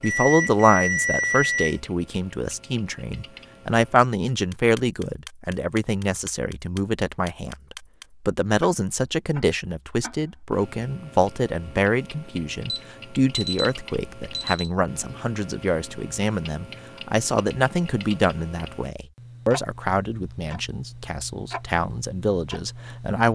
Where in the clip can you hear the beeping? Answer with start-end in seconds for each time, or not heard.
0.0-1.8, 12.7-14.7.